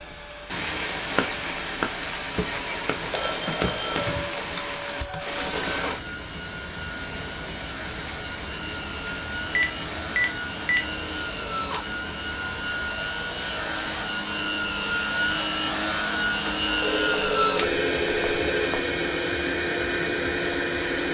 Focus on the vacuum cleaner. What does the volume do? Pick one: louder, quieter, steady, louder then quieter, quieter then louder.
louder.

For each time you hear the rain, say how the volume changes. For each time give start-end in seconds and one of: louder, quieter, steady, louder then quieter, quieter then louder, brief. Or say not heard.
0.0-21.0 quieter.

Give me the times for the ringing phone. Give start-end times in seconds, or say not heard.
3.1-4.2, 9.6-10.8, 16.8-18.8.